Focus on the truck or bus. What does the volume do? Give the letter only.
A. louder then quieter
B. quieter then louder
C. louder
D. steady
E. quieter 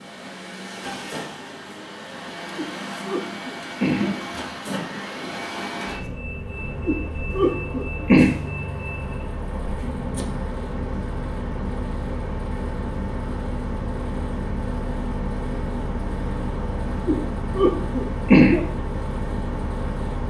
D.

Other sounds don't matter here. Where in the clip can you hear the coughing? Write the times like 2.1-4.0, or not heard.
2.5-4.2, 6.8-8.3, 17.1-18.6.